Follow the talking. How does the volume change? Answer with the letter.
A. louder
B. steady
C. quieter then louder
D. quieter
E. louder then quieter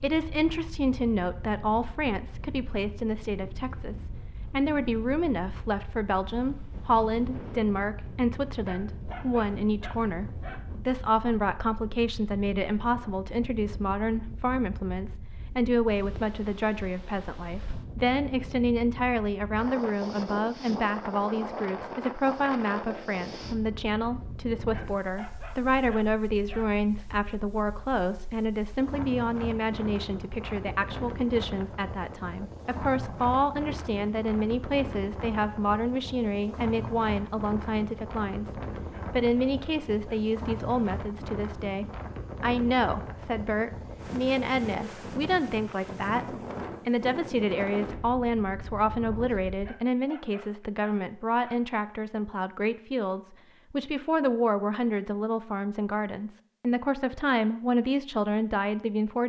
B.